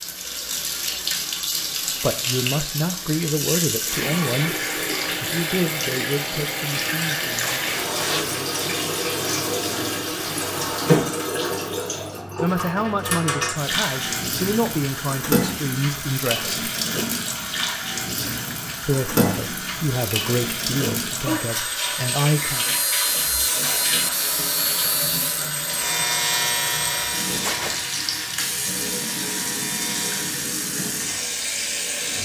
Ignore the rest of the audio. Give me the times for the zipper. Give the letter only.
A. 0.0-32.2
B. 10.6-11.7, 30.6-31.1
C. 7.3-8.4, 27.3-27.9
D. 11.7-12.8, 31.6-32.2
C.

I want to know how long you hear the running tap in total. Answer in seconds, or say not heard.
32 s.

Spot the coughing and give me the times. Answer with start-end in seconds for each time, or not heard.
not heard.